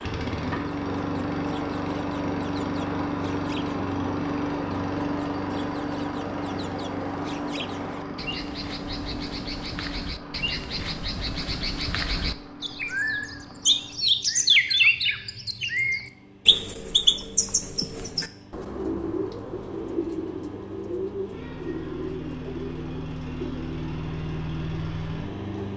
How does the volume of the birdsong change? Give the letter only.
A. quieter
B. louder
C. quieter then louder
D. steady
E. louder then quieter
E.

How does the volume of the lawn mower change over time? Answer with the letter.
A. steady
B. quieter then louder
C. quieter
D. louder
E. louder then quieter
B.